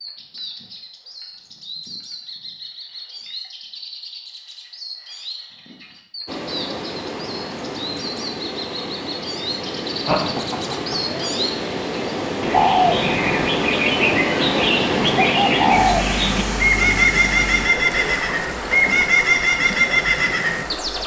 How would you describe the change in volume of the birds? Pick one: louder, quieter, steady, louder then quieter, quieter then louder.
louder.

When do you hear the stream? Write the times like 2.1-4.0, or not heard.
6.2-21.0.